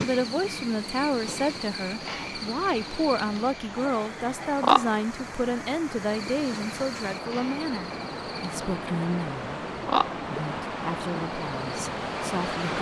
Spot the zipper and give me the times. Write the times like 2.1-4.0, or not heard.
not heard.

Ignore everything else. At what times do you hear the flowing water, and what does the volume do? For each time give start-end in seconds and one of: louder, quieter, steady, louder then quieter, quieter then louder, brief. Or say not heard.
0.1-12.7 louder.